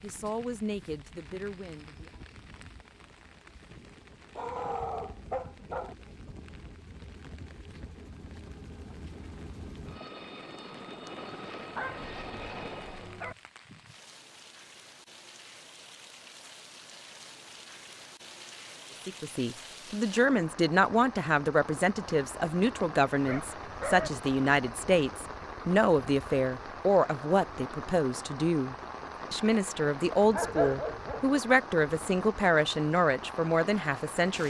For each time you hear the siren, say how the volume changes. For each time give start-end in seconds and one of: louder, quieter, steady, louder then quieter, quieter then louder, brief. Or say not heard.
not heard.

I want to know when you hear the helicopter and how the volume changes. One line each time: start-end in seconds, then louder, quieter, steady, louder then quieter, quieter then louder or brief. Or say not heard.
0.0-13.2 louder.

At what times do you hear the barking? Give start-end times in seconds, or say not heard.
4.3-6.0, 11.7-13.3, 23.2-24.1, 30.3-31.4.